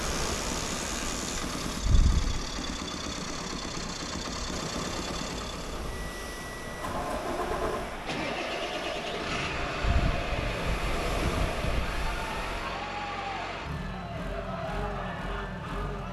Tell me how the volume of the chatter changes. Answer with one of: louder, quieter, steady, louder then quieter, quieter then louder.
steady.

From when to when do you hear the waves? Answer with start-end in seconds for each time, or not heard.
0.0-12.8.